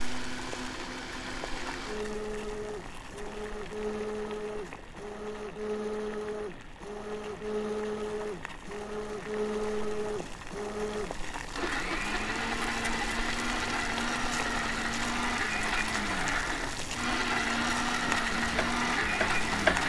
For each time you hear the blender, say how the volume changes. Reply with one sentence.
The blender can be heard from 0.0 to 19.8 s, getting louder.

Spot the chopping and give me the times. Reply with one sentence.
You can hear the chopping from 18.1 to 19.8 s.